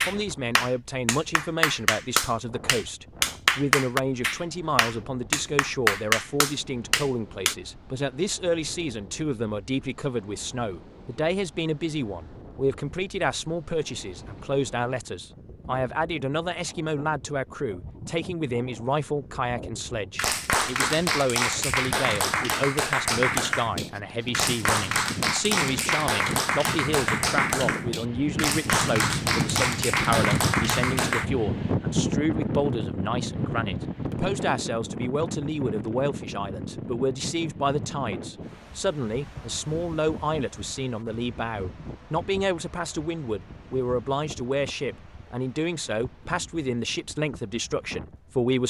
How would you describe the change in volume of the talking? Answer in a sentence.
The loudness of the talking stays about the same.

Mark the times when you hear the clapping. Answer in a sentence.
You can hear the clapping from 0.0 to 7.5 s and from 20.1 to 31.2 s.